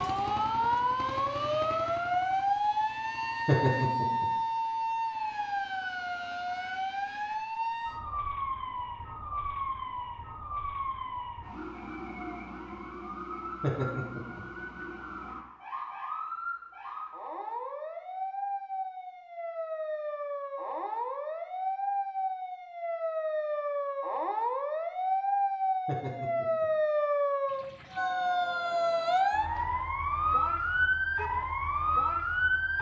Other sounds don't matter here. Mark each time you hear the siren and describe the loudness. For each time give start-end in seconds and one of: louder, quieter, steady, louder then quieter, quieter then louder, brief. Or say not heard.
0.0-32.7 quieter then louder.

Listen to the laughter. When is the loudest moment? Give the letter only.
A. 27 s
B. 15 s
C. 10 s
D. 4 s
D.